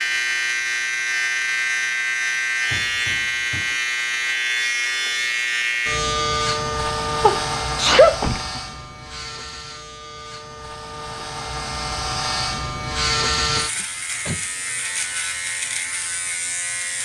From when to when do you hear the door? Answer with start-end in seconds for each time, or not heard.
2.6-3.8, 8.2-8.6, 13.6-14.5.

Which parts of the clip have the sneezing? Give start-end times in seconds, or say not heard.
7.2-8.6.